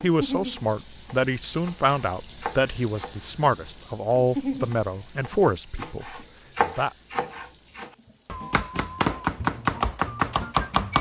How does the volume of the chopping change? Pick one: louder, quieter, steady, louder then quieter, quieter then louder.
louder.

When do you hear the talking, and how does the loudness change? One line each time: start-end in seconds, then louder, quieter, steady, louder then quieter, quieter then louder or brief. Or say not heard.
0.0-6.9 steady.